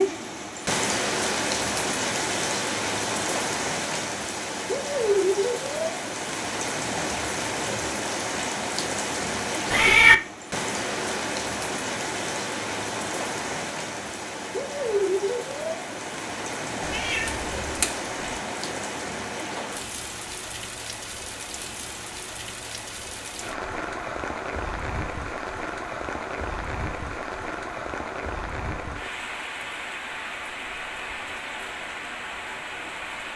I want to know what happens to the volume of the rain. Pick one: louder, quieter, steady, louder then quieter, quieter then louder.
quieter.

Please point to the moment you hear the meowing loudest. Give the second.
10 s.